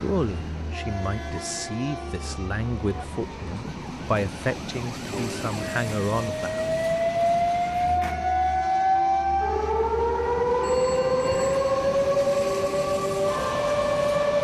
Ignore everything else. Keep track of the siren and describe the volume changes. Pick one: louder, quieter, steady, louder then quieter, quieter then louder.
louder.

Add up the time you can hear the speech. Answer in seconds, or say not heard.
7 s.